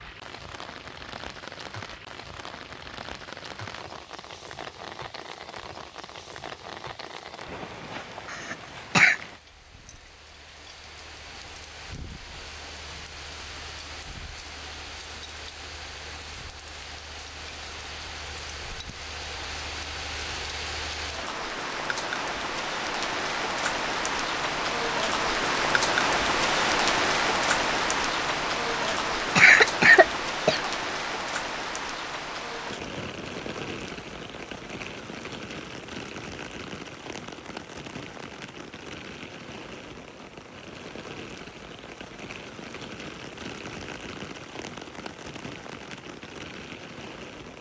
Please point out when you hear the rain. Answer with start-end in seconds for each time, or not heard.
0.0-47.5.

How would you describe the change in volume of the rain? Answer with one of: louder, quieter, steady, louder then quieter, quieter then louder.
louder then quieter.